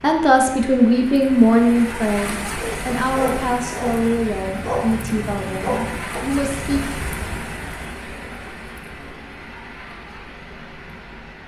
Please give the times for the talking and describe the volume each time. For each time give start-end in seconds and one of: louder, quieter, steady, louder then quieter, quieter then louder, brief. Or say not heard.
0.0-6.8 quieter.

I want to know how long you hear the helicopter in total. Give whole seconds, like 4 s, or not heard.
not heard.